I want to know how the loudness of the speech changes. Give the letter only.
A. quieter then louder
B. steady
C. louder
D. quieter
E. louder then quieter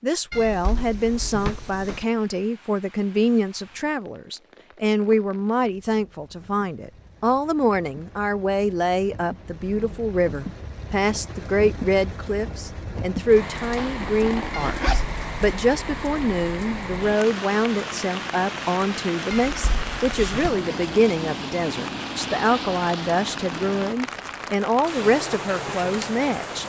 B.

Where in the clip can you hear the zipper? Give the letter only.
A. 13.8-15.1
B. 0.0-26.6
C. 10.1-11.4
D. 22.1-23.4
A.